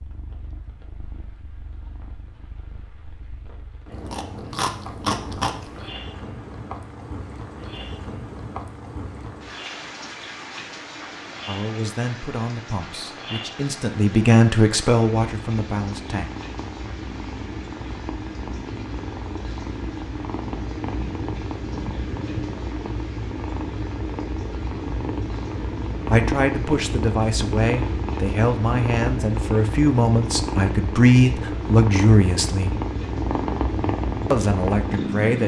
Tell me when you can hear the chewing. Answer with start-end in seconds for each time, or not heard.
4.0-5.9.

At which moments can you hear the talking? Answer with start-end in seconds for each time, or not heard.
11.4-16.3, 26.1-32.8, 34.3-35.4.